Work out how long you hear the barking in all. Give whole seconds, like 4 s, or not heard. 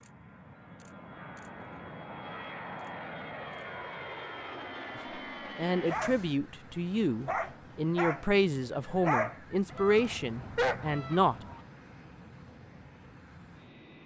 4 s.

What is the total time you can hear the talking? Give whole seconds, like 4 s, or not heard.
6 s.